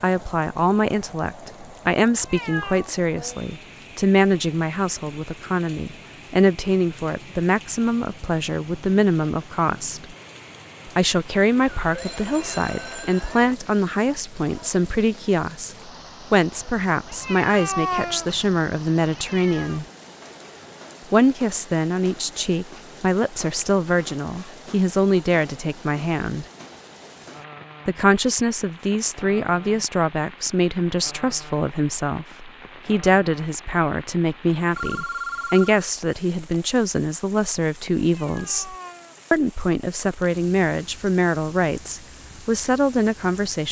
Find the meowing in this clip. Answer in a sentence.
The meowing can be heard from 2.1 to 2.9 s, from 17.1 to 19.8 s and from 38.1 to 39.3 s.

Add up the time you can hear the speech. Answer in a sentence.
You can hear the speech for 40 seconds altogether.